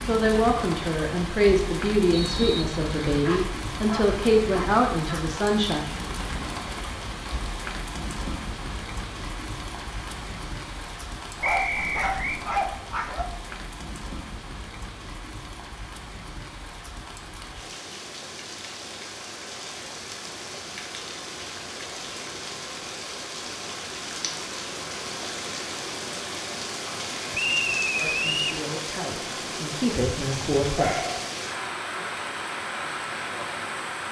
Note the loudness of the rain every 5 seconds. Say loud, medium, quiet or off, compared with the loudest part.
loud, loud, medium, medium, loud, loud, loud.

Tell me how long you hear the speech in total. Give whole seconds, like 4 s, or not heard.
9 s.